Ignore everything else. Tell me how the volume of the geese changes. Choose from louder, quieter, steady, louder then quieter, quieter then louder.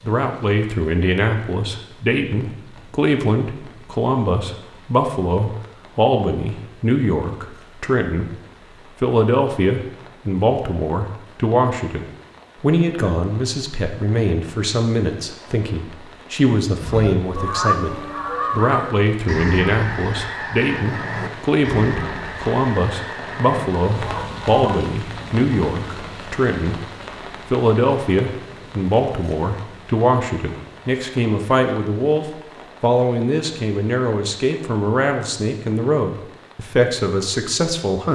quieter.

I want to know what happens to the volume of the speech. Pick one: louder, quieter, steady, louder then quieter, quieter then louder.
steady.